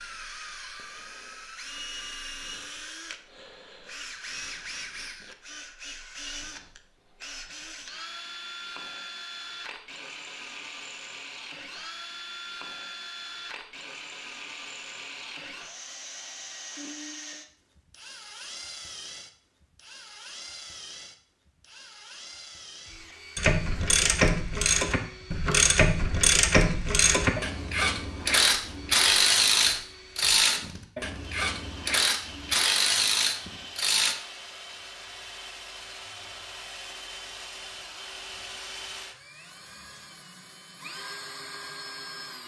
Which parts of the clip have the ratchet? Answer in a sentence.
You can hear the ratchet from 23.4 to 34.1 s.